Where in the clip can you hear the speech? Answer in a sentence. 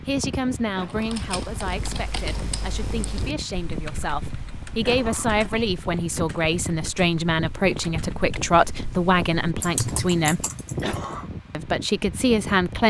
The speech can be heard from 0.0 to 10.4 s and from 11.5 to 12.8 s.